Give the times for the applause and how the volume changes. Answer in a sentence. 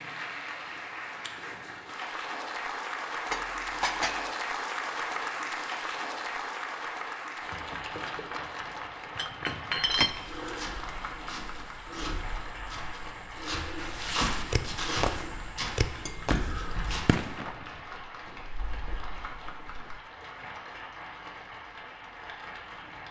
You can hear the applause from 0.0 to 23.0 s, getting quieter.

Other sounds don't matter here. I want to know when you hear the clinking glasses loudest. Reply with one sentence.
The volume of the clinking glasses peaks at 10 seconds.